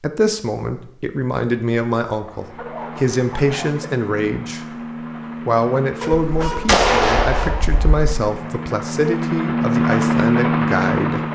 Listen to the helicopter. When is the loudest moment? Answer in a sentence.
The volume of the helicopter peaks at 10 seconds.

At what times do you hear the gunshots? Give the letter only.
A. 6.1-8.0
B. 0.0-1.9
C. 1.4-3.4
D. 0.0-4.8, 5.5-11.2
A.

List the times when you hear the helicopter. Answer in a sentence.
The helicopter can be heard from 2.2 to 11.2 s.